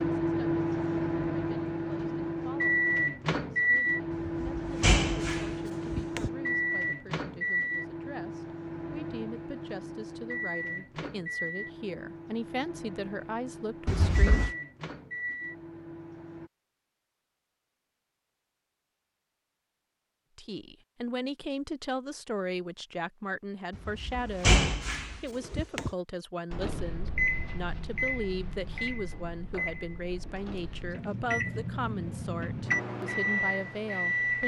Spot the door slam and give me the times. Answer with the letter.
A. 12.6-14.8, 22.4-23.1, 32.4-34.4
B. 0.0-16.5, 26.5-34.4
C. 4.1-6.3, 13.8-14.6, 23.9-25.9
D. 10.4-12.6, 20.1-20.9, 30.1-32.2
C.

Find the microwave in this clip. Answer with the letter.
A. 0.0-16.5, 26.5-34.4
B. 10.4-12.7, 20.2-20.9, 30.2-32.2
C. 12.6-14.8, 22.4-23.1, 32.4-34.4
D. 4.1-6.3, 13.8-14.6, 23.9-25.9
A.